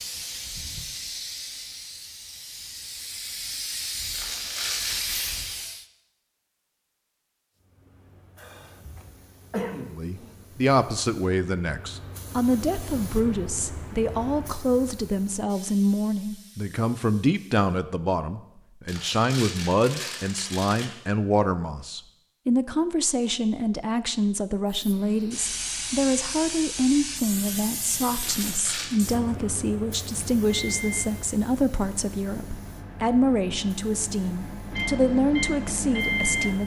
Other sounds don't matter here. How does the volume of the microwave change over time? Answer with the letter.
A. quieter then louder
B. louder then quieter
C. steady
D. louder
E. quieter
A.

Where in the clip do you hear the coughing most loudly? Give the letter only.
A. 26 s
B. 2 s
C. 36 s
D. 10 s
D.